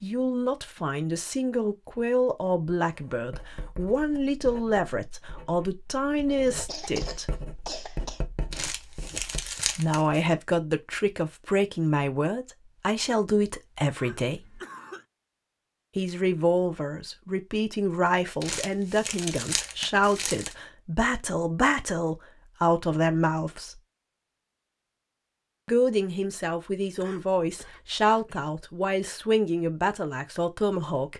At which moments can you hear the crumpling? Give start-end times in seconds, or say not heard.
8.5-10.2, 18.4-20.6.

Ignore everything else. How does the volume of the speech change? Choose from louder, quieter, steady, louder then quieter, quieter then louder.
steady.